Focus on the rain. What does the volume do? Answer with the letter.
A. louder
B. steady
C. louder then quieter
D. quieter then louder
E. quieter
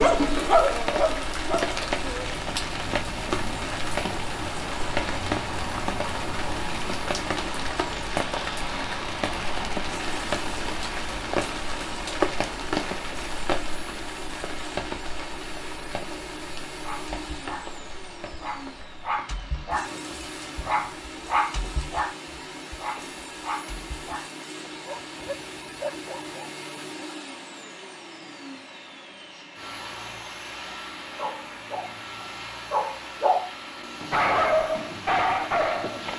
E.